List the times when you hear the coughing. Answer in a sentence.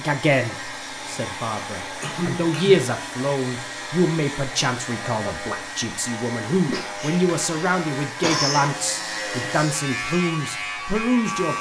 The coughing can be heard from 2.0 to 2.8 s and from 6.7 to 8.7 s.